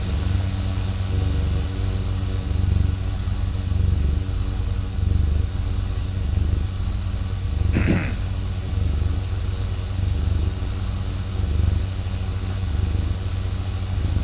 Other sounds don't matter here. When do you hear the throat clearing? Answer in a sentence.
You can hear the throat clearing from 7.7 to 8.3 s.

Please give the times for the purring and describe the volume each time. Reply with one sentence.
You can hear the purring from 0.0 to 14.1 s, at a steady volume.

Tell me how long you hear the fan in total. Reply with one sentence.
The fan can be heard for 14 seconds in total.